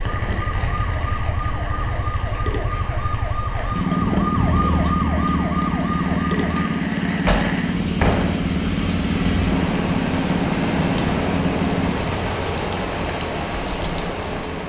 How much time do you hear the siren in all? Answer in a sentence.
The siren can be heard for 7 seconds in total.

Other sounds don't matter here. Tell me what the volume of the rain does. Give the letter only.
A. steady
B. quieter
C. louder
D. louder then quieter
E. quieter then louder
C.